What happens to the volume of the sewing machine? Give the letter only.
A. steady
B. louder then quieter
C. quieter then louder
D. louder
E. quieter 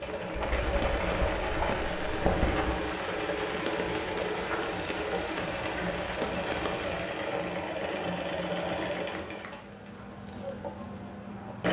E.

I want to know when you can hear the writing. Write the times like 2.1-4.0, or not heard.
0.3-2.8.